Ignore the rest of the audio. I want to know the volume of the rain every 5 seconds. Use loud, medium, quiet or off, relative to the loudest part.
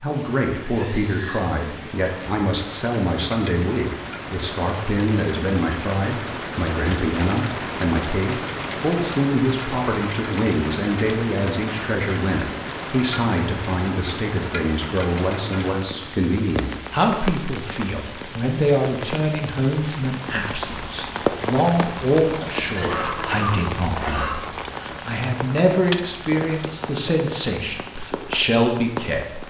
medium, loud, loud, loud, loud, loud.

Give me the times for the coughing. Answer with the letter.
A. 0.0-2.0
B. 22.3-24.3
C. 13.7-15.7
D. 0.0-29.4
B.